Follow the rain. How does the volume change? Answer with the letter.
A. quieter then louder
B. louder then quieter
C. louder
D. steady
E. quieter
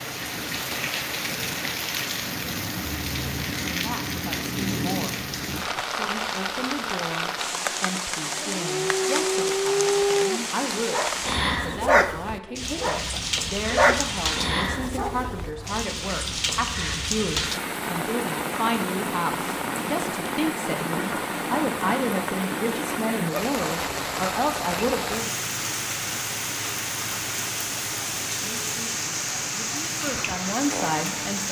D.